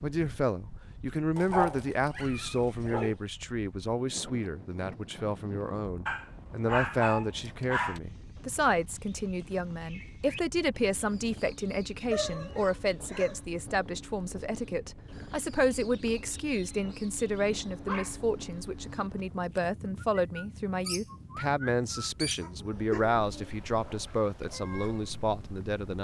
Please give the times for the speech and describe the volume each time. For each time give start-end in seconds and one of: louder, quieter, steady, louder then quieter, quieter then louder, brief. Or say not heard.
0.0-25.9 steady.